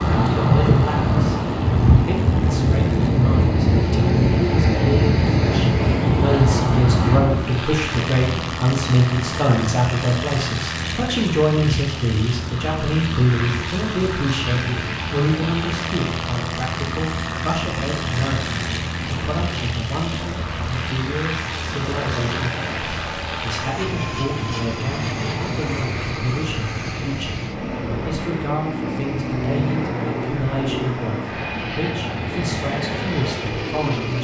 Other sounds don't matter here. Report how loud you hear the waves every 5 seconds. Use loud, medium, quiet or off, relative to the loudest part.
loud, loud, quiet, quiet, quiet, quiet, quiet.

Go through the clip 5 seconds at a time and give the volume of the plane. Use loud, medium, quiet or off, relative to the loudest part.
quiet, loud, loud, loud, loud, loud, loud.